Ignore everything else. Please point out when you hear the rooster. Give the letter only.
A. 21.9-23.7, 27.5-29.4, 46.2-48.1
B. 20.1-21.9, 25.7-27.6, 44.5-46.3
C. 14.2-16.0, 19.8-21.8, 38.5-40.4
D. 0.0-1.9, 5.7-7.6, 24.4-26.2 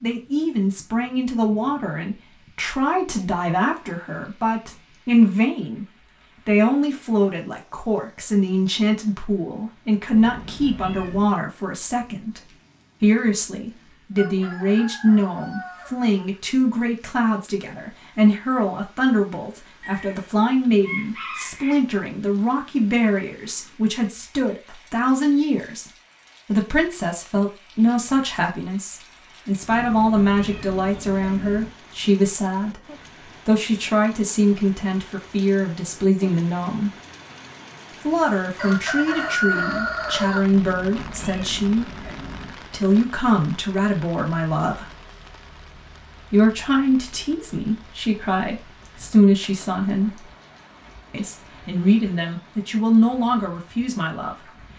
C.